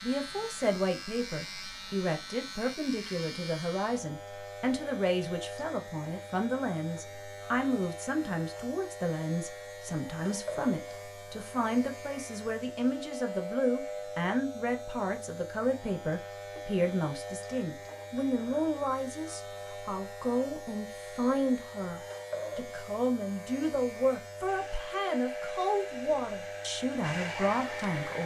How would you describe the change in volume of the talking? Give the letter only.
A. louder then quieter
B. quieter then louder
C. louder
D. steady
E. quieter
D.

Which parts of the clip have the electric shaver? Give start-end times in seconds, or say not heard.
0.0-28.2.